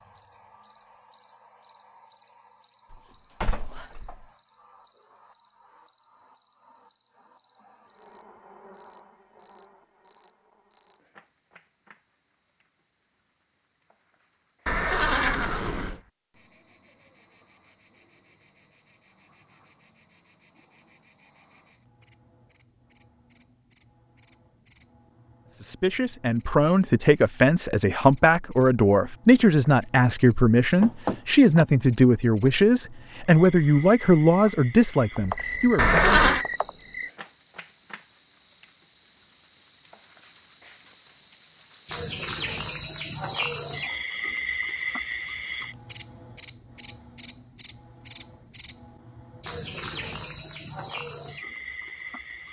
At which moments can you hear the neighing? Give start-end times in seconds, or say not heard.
14.7-16.0, 35.8-36.5.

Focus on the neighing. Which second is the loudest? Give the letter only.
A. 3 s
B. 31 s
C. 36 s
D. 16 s
C.